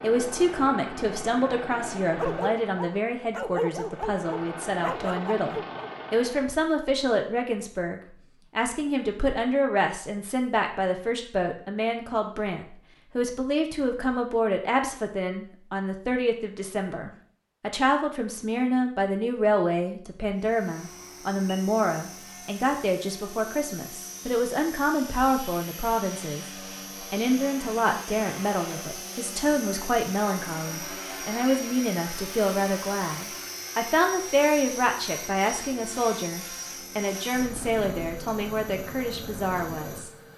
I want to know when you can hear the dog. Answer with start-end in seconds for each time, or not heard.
2.1-5.9.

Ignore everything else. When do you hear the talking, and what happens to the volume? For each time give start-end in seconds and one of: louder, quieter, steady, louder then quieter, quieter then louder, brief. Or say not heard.
0.0-40.1 steady.